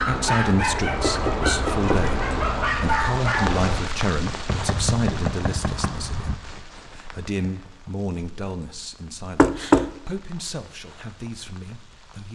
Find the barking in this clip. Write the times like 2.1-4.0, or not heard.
0.0-3.9.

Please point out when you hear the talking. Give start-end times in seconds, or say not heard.
0.0-12.3.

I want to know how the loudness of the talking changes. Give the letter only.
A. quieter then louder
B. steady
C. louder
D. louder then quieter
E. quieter
E.